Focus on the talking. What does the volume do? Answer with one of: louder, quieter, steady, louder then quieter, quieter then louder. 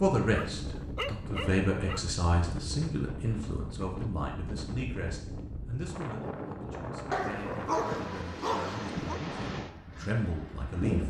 quieter then louder.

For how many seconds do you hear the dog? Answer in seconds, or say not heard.
4 s.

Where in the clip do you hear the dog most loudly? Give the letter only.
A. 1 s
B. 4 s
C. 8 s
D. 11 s
C.